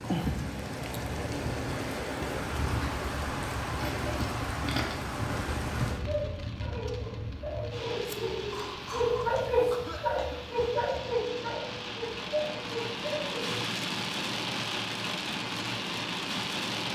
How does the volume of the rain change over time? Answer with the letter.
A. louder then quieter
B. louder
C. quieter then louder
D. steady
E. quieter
C.